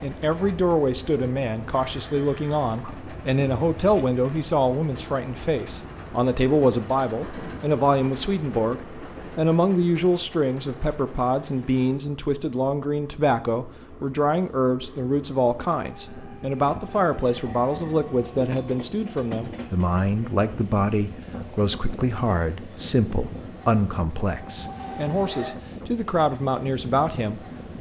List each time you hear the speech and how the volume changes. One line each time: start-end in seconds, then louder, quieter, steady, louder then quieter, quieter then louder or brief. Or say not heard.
0.0-27.4 steady.